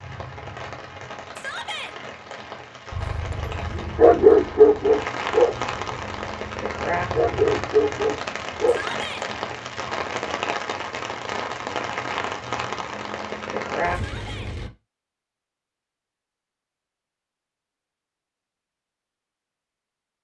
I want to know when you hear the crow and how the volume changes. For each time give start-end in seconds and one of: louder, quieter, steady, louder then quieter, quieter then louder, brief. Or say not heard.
not heard.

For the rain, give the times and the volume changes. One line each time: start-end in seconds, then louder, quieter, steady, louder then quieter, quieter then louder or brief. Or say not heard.
0.0-14.7 louder.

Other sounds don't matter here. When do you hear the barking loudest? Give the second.
4 s.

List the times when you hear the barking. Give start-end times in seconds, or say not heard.
3.0-8.8.